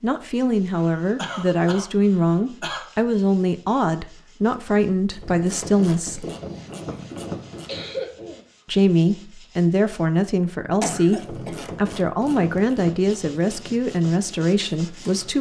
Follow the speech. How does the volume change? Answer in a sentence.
The loudness of the speech stays about the same.